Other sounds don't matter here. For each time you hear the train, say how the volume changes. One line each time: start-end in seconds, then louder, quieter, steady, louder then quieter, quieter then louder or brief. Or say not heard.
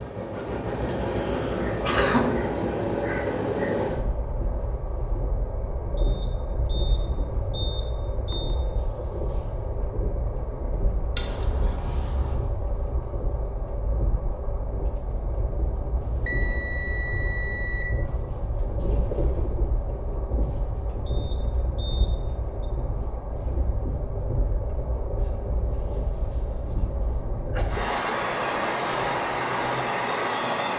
0.0-30.7 quieter then louder.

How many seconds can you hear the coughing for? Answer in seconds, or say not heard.
4 s.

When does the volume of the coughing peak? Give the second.
2 s.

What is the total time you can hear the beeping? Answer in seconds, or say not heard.
6 s.